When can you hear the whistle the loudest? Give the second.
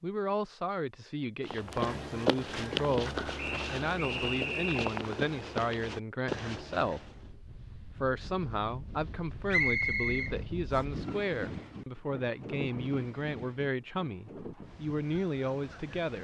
10 s.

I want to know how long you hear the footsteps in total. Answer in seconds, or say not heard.
6 s.